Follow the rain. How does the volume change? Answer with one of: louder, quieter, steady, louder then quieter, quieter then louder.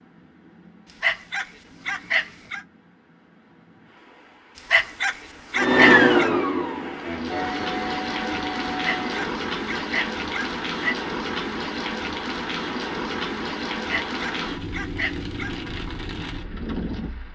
louder.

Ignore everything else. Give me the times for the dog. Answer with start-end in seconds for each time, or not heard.
0.8-2.6, 4.5-6.3, 8.7-10.9, 13.8-15.6.